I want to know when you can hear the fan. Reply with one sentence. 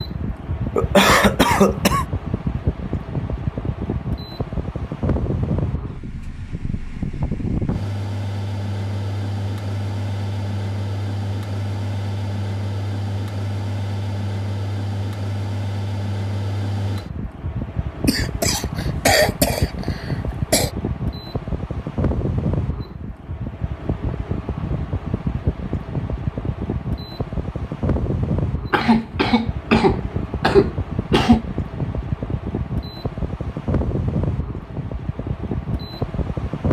You can hear the fan from 0.0 to 36.6 s.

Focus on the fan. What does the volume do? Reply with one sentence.
The volume of the fan stays about the same.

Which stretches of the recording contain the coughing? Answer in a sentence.
The coughing can be heard from 0.8 to 2.0 s, from 18.1 to 20.7 s and from 28.7 to 31.4 s.